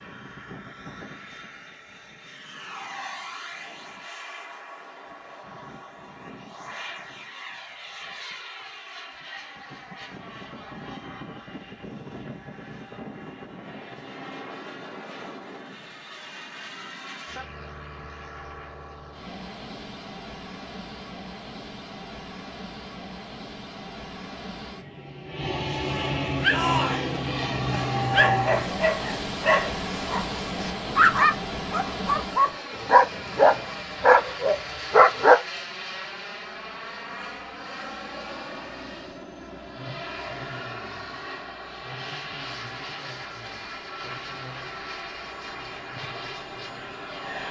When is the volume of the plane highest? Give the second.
28 s.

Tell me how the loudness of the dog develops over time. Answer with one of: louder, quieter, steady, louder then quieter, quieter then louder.
louder.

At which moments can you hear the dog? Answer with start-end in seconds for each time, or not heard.
26.4-35.4.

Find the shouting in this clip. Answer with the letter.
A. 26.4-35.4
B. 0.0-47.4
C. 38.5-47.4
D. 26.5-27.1
D.